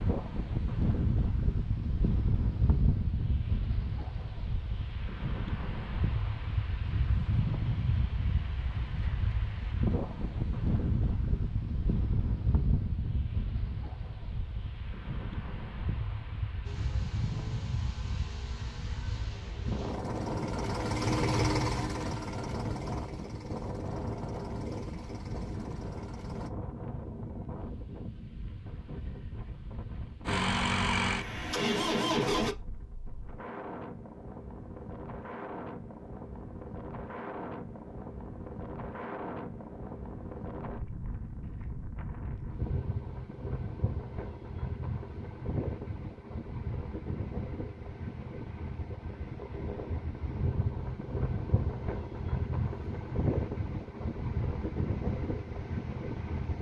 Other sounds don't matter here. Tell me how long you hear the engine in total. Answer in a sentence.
You can hear the engine for 12 seconds altogether.